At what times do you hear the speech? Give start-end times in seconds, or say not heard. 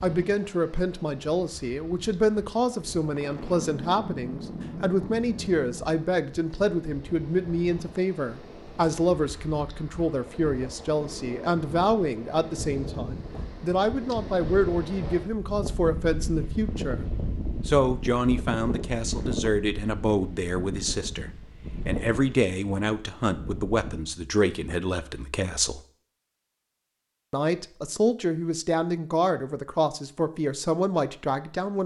0.0-17.1, 17.6-25.8, 27.3-31.8.